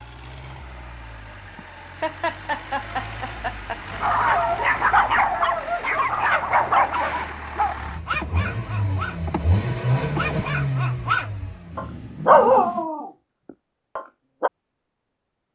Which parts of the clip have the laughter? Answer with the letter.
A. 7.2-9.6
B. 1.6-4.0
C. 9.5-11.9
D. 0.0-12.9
B.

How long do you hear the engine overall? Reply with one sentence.
You can hear the engine for 13 seconds altogether.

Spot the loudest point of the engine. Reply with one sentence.
The volume of the engine peaks at 10 seconds.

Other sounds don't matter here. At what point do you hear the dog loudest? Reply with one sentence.
The loudest moment of the dog is at 12 seconds.